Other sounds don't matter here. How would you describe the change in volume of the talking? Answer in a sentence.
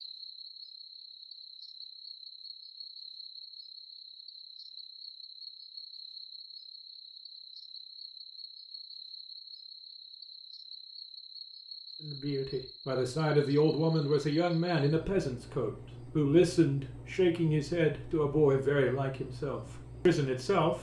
The loudness of the talking stays about the same.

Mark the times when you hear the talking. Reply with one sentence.
You can hear the talking from 12.0 to 20.7 s.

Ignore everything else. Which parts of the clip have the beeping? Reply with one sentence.
The beeping can't be heard in this clip.